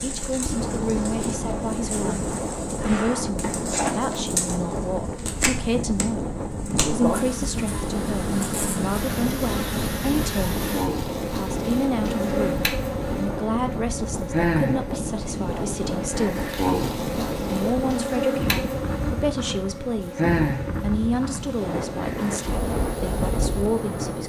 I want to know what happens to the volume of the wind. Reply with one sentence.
The loudness of the wind stays about the same.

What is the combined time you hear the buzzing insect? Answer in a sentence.
You can hear the buzzing insect for 24 seconds altogether.